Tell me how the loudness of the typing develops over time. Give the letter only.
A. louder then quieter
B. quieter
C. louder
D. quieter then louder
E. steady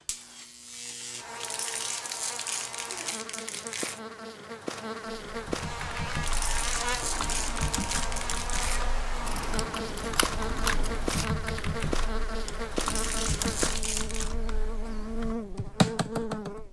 C.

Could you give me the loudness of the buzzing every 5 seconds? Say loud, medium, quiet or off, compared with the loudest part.
medium, loud, loud, loud.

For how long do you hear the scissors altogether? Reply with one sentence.
The scissors can be heard for 2 seconds in total.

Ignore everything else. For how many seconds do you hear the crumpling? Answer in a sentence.
The crumpling can be heard for 7 seconds in total.